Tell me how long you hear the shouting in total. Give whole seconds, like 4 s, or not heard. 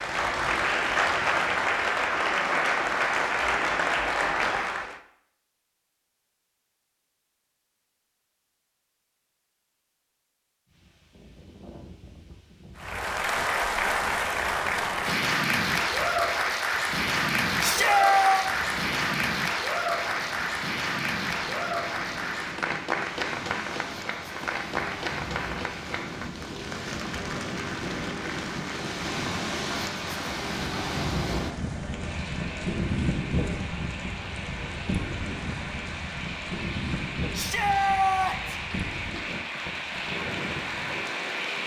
2 s.